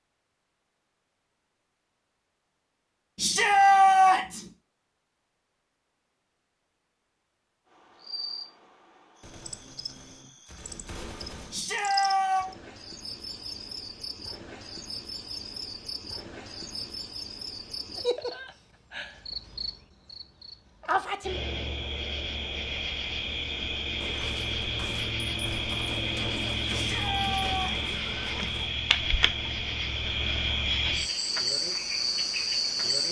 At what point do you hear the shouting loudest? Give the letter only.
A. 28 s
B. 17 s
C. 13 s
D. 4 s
D.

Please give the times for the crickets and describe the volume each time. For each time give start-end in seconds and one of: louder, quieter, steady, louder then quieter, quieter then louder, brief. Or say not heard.
7.7-33.0 louder.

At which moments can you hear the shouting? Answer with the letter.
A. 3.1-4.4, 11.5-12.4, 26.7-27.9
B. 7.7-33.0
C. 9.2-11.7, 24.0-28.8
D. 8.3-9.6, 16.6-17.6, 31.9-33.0
A.